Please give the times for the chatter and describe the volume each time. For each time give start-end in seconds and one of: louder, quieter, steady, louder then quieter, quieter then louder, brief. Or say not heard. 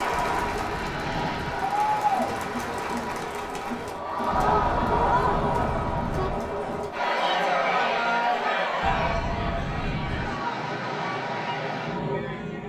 0.0-12.6 quieter.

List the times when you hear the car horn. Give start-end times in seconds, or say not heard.
0.1-1.7, 4.3-6.5, 8.8-10.4.